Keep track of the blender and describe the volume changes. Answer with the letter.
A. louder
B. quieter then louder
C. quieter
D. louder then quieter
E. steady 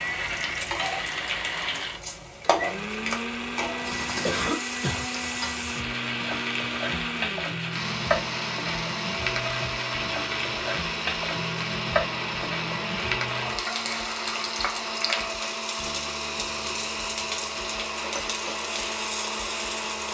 E.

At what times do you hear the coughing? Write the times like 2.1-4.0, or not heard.
4.2-5.0.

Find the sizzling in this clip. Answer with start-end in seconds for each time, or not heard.
0.0-20.0.